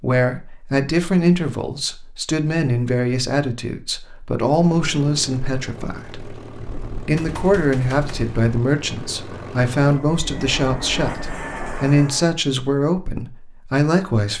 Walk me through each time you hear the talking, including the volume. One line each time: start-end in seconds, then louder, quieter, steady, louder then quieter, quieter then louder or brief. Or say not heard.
0.0-14.3 steady.